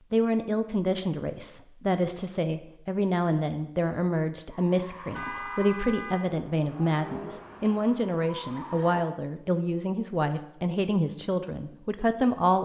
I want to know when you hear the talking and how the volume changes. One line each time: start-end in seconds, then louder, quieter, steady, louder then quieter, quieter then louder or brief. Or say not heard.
0.1-12.5 steady.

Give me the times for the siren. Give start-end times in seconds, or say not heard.
not heard.